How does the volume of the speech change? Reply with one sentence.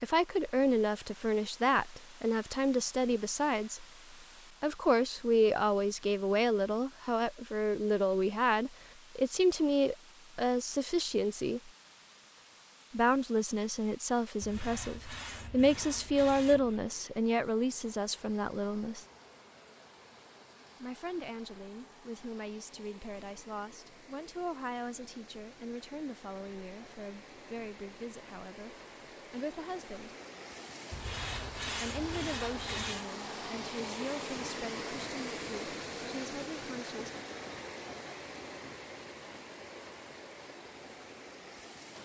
The volume of the speech goes down.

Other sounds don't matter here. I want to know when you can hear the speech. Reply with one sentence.
The speech can be heard from 0.0 to 3.9 s, from 4.6 to 11.7 s, from 12.9 to 19.1 s, from 20.8 to 30.1 s and from 31.8 to 37.1 s.